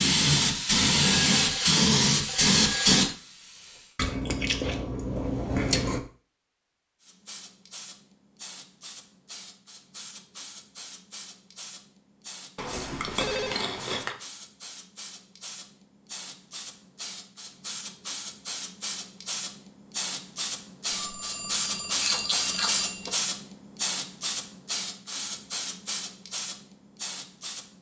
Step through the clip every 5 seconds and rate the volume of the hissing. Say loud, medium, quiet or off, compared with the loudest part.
loud, quiet, quiet, quiet, medium, quiet.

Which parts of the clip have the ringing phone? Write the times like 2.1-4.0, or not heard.
1.0-3.1, 12.7-13.6, 20.9-23.1.